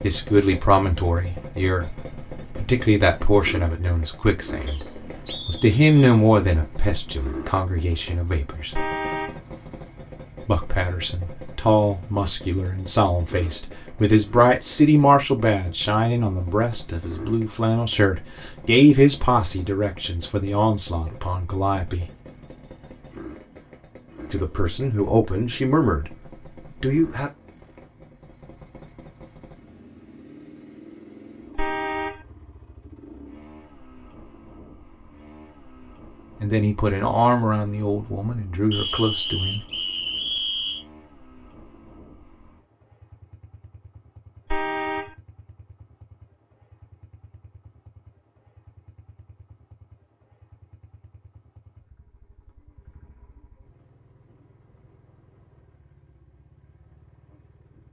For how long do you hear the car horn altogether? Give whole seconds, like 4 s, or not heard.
2 s.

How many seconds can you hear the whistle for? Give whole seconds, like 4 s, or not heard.
4 s.